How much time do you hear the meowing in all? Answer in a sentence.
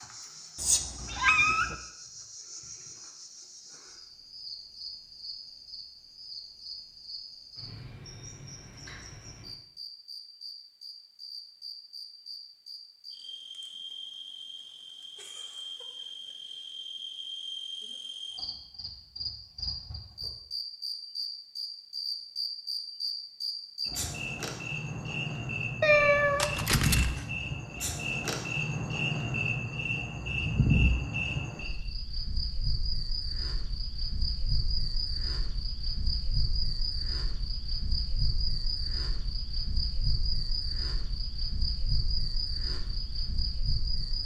You can hear the meowing for 3 seconds altogether.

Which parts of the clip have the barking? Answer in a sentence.
You can't hear the barking here.